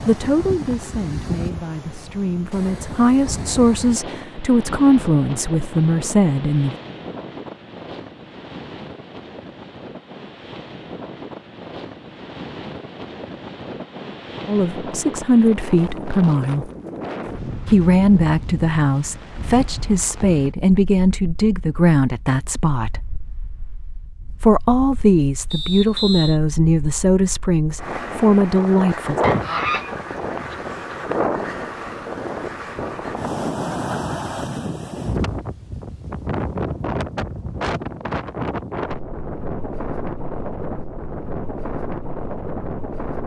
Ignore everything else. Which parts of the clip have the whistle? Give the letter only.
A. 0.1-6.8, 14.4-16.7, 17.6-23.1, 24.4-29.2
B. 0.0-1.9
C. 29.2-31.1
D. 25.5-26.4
D.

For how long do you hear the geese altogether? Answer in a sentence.
You can hear the geese for 2 seconds altogether.